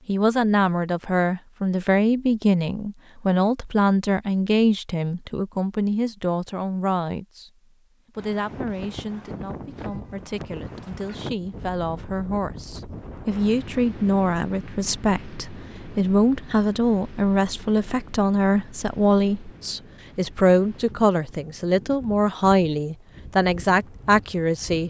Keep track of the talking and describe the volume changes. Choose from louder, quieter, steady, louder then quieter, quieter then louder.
quieter then louder.